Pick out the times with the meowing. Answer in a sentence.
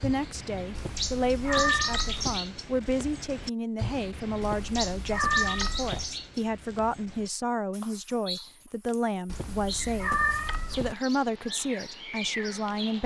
The meowing can be heard from 0.8 to 2.4 s, from 4.4 to 6.0 s and from 9.3 to 10.9 s.